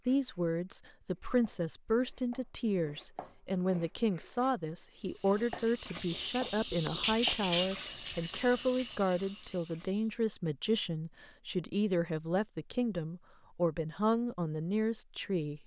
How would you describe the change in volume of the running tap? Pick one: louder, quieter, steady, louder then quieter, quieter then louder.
louder then quieter.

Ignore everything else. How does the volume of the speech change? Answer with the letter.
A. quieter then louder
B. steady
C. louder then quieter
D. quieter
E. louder
B.